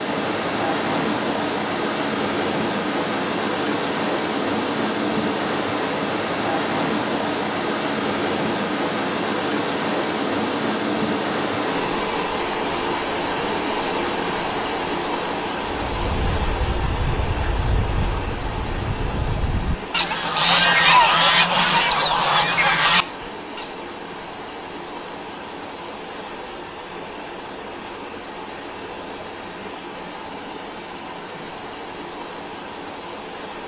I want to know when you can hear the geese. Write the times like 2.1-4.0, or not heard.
15.8-23.6.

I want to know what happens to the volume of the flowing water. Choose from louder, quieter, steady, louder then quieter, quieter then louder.
quieter.